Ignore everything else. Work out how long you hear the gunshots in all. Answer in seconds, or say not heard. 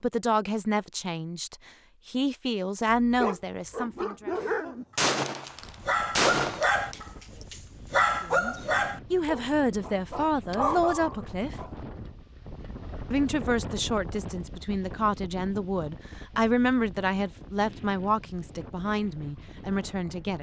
3 s.